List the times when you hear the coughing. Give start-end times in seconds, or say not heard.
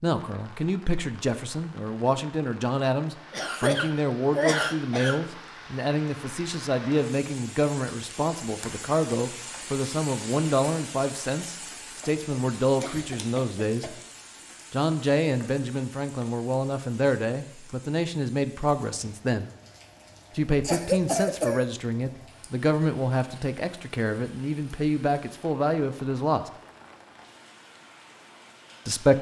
3.3-5.2, 12.0-14.1, 20.6-21.6.